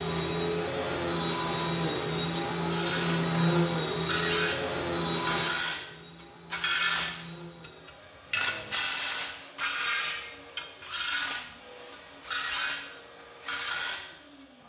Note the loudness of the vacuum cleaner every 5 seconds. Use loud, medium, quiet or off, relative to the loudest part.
loud, medium, quiet.